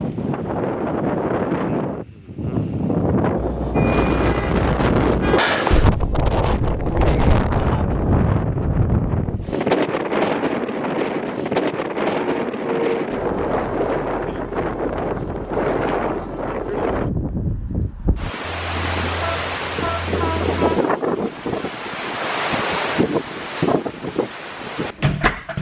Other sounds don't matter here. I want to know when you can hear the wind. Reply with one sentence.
The wind can be heard from 0.0 to 25.5 s.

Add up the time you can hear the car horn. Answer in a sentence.
The car horn can be heard for 5 seconds in total.